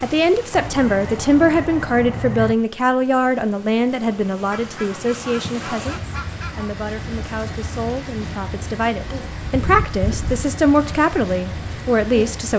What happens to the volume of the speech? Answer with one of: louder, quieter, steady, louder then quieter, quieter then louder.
quieter then louder.